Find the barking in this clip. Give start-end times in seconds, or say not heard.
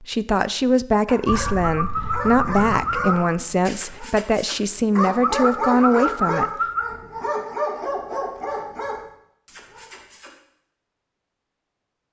1.1-10.3.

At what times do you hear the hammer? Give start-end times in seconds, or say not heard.
not heard.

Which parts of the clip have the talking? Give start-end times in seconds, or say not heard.
0.0-6.5.